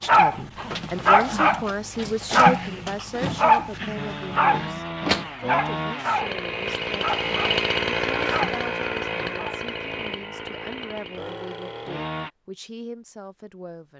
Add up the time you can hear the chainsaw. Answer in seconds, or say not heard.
8 s.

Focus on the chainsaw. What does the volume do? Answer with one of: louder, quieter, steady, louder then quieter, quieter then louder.
louder then quieter.